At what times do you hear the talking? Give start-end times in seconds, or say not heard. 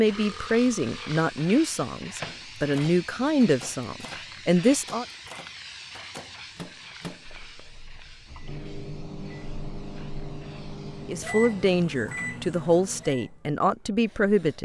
0.0-5.0, 11.1-14.6.